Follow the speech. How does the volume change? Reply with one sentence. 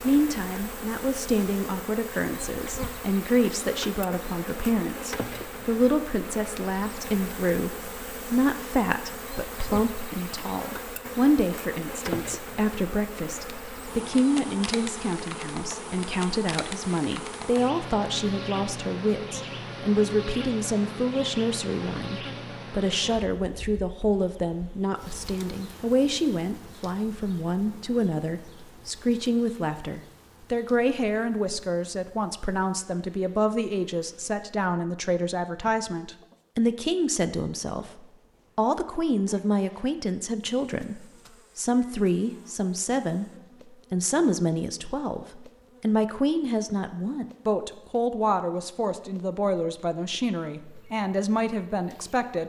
The volume of the speech stays about the same.